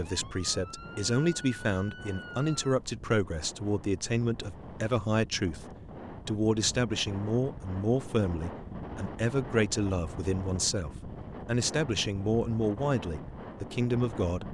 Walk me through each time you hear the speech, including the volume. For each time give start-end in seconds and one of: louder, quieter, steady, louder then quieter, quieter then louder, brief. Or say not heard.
0.0-14.4 steady.